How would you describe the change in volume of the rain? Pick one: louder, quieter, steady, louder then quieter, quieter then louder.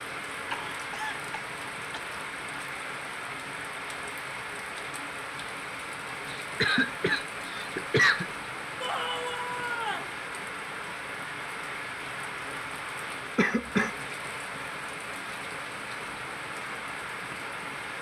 steady.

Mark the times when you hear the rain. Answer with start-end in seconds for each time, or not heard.
0.0-17.9.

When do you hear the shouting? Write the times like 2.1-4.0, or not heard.
8.8-10.2.